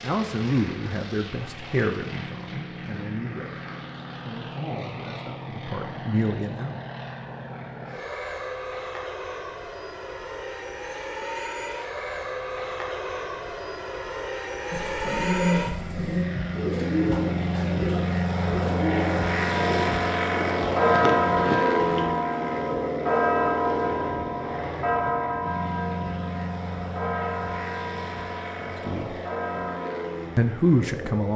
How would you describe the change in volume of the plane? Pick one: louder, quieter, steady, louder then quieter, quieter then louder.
louder then quieter.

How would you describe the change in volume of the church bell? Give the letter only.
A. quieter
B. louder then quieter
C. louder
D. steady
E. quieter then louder
A.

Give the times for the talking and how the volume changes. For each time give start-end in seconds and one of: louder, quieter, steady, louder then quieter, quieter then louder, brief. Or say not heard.
0.0-6.8 quieter then louder
28.6-29.2 brief
30.4-31.3 brief.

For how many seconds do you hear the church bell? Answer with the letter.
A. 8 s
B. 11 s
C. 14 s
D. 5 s
B.